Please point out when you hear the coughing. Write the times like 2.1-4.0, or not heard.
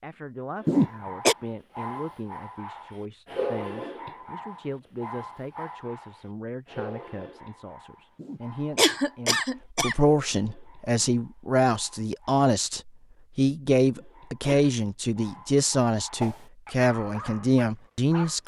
0.7-1.4, 8.2-9.9, 13.8-14.7.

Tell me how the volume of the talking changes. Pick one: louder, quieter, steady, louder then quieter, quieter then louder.
louder.